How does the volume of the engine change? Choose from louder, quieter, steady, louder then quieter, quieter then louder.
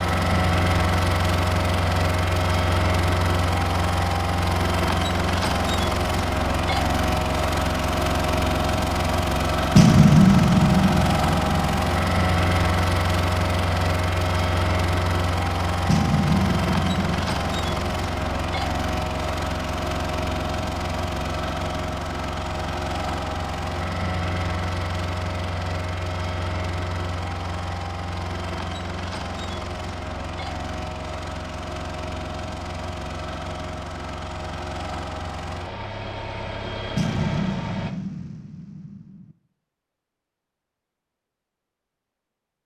quieter.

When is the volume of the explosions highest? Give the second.
10 s.